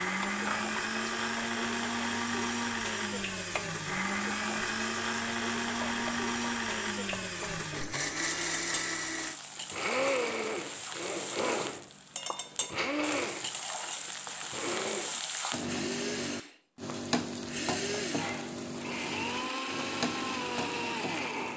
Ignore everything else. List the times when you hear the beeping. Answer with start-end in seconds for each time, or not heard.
not heard.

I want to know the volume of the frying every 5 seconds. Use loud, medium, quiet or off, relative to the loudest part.
medium, medium, loud, loud, loud.